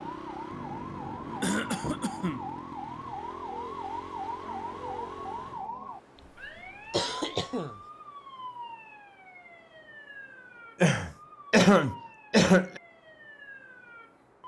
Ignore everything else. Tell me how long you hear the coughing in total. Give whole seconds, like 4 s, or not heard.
4 s.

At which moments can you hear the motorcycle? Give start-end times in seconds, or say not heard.
0.0-5.7.